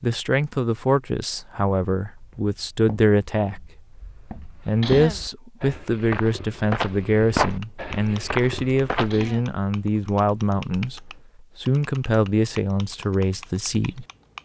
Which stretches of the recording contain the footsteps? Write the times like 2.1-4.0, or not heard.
2.1-9.3.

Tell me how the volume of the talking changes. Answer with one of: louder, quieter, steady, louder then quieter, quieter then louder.
steady.